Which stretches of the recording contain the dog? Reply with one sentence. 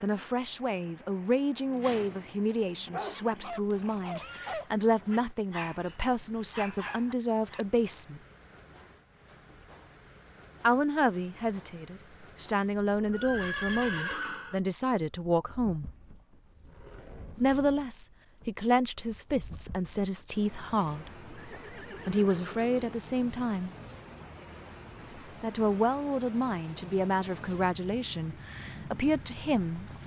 You can hear the dog from 1.6 to 7.7 s.